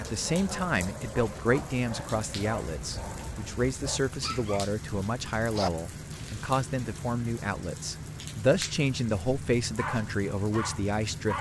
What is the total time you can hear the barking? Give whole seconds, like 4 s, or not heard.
8 s.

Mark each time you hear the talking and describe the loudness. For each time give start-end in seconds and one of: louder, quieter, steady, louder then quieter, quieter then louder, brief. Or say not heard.
0.0-11.3 steady.